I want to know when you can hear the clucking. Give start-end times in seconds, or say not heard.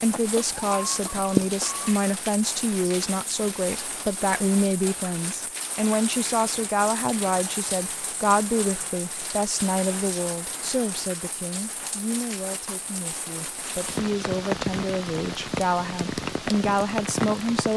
0.1-1.9.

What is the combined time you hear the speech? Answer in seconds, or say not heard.
18 s.